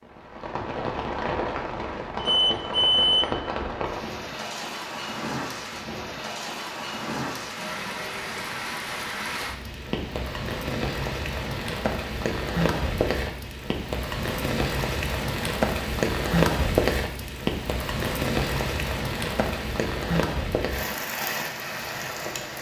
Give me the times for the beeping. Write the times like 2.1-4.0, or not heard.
2.1-3.4.